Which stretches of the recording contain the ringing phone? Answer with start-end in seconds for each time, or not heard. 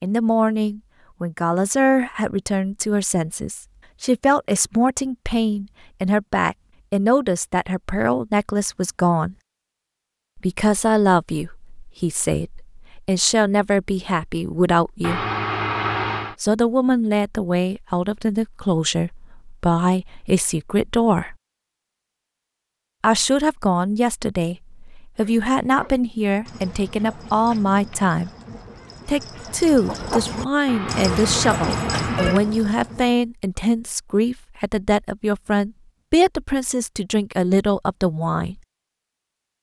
15.0-16.4, 30.6-32.4.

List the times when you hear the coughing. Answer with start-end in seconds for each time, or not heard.
not heard.